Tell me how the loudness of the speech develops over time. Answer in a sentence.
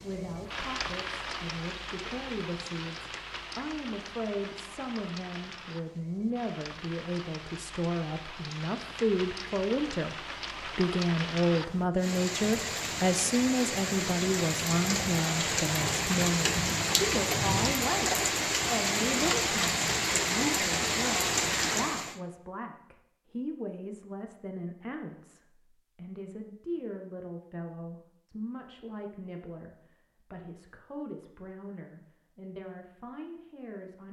The volume of the speech goes up, then down.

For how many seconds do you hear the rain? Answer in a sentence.
The rain can be heard for 22 seconds in total.